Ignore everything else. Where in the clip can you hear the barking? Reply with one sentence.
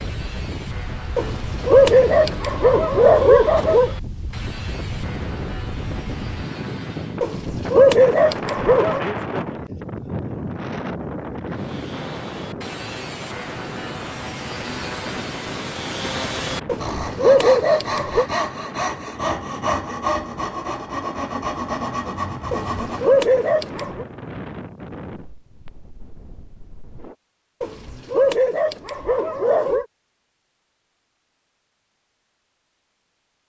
The barking can be heard from 1.1 to 3.9 s, from 7.2 to 9.1 s, from 16.6 to 18.2 s, from 22.5 to 24.1 s and from 27.6 to 29.9 s.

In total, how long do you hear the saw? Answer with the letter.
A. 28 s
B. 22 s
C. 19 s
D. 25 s
C.